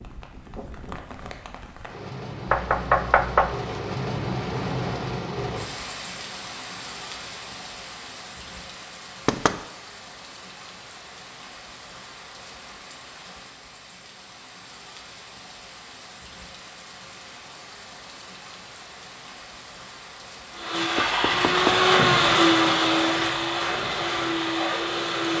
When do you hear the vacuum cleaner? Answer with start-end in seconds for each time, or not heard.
20.5-25.3.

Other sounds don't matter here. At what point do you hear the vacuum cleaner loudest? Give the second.
22 s.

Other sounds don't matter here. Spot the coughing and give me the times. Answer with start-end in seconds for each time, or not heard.
not heard.